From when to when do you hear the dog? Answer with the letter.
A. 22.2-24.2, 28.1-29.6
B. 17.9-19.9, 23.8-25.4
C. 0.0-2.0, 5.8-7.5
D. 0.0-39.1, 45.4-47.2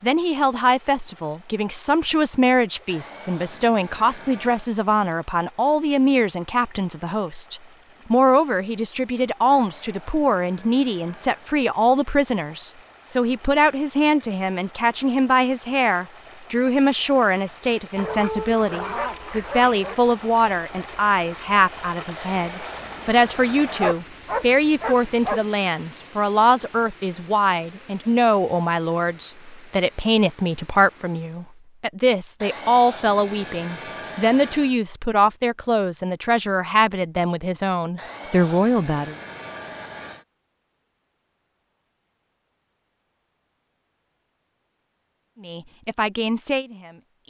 B.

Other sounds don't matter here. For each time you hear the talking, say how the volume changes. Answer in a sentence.
The talking can be heard from 0.0 to 39.1 s, at a steady volume; and briefly from 45.4 to 47.2 s.